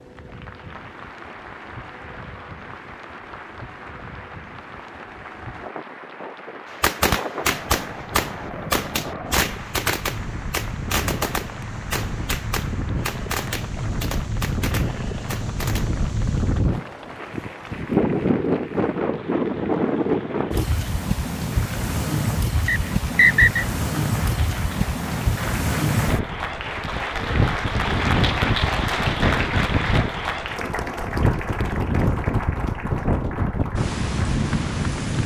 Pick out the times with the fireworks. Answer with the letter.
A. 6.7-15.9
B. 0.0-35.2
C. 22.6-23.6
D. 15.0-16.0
A.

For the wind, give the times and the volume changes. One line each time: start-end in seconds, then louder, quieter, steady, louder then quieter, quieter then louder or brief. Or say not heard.
0.0-35.2 louder.